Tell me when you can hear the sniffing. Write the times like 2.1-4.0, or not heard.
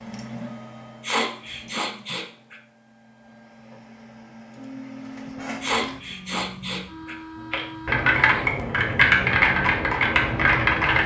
1.0-2.5, 5.6-7.2.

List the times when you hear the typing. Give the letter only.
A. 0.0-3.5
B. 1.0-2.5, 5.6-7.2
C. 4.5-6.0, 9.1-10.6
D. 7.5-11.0
D.